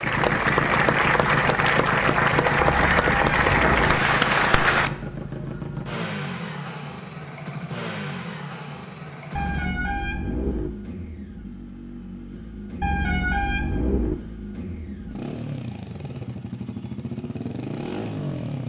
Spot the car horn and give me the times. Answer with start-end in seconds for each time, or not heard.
2.5-4.0, 9.3-10.7, 12.8-14.2.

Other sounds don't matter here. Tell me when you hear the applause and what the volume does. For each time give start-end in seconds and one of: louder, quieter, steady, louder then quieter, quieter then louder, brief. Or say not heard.
0.0-4.9 steady.